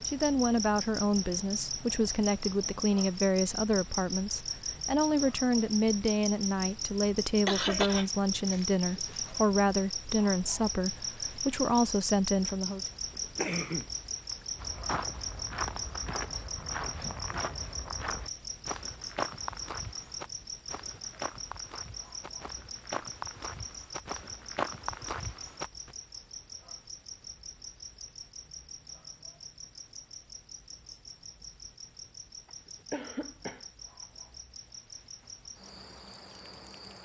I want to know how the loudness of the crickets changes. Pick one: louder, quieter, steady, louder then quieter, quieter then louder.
quieter.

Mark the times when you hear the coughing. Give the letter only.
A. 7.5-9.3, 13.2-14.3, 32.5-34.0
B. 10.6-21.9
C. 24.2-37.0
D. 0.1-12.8
A.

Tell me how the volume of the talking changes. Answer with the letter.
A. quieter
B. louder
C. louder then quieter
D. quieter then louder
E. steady
E.